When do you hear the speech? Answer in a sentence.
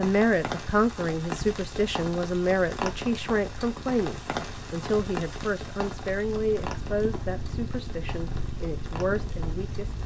The speech can be heard from 0.0 to 9.9 s.